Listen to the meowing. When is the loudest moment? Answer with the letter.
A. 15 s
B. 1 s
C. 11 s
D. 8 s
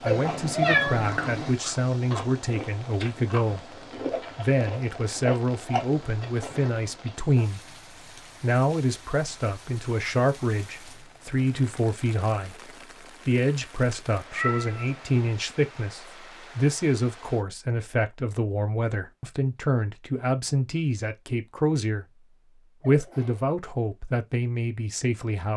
B.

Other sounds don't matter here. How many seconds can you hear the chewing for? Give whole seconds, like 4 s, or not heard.
7 s.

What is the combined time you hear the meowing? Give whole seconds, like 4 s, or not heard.
2 s.